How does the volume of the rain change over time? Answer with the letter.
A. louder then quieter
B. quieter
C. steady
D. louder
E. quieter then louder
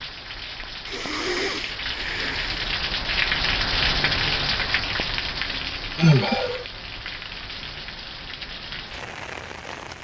A.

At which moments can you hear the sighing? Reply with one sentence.
The sighing can be heard from 0.8 to 2.8 s and from 6.0 to 6.7 s.